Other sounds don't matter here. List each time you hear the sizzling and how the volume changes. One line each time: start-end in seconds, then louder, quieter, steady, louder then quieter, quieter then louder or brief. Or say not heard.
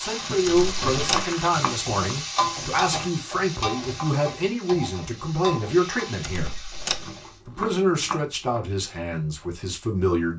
0.0-7.4 quieter.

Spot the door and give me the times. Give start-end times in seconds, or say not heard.
0.5-1.3, 6.2-7.1.